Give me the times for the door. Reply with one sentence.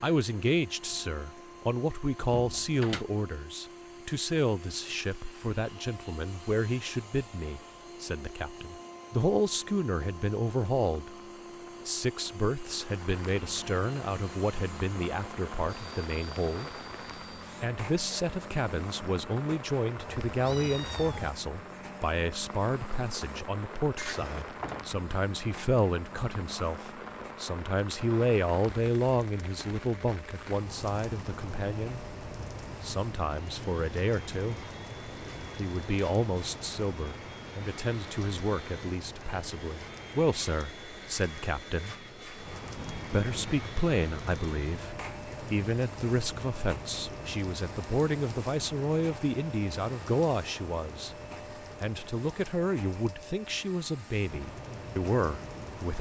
You can hear the door from 2.3 to 3.0 s, from 23.9 to 24.9 s and from 42.8 to 43.5 s.